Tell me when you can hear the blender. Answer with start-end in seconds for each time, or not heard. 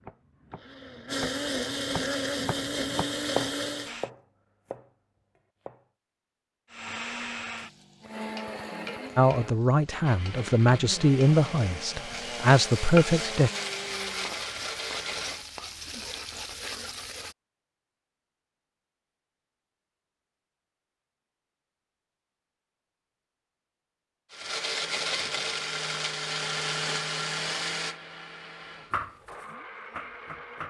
0.0-4.1, 6.7-15.4, 24.3-30.6.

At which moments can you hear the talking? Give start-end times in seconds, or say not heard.
9.2-13.5.